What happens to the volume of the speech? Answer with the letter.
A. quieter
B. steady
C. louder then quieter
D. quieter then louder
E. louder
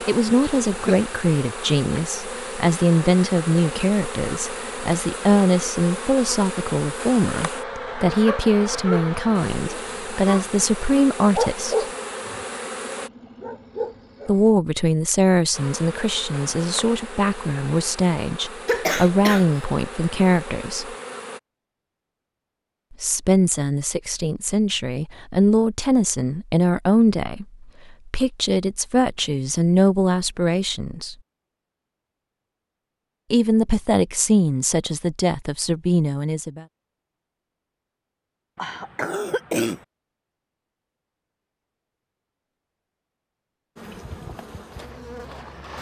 B.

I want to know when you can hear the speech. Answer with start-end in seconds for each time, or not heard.
0.1-11.8, 14.2-20.9, 22.9-31.1, 33.3-36.6.